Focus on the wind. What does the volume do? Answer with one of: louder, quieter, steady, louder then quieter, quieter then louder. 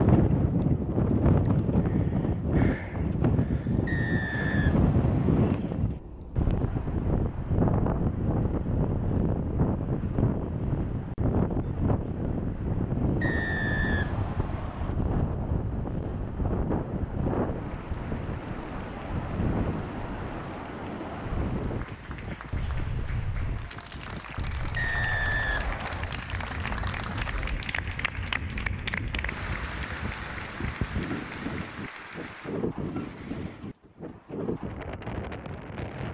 quieter.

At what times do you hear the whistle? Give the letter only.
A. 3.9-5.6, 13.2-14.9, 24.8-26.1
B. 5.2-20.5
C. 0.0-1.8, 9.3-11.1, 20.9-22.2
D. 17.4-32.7
A.